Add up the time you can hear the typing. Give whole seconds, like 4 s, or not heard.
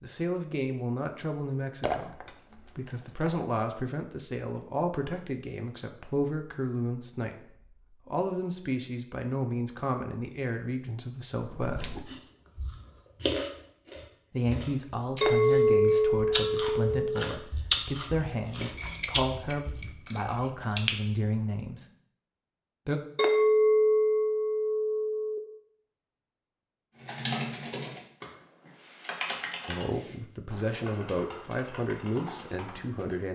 6 s.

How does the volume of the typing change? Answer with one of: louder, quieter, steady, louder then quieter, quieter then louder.
quieter.